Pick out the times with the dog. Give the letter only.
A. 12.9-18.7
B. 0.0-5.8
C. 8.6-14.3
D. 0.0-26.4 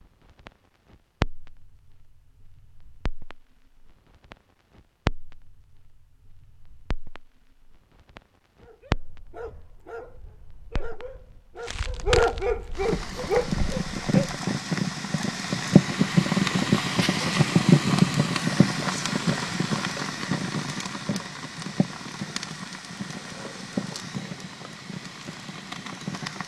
C.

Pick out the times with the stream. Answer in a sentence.
The stream can't be heard in this clip.